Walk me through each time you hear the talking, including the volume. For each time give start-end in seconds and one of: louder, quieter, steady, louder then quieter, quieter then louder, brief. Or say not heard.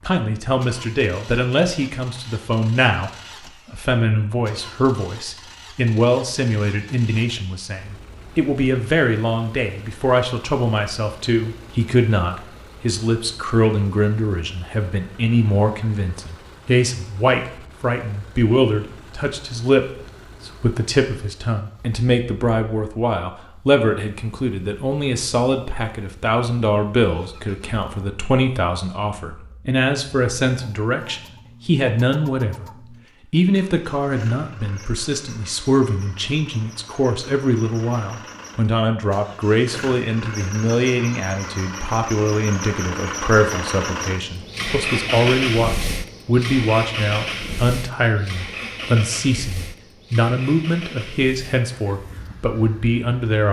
0.1-32.6 steady
33.3-53.4 steady.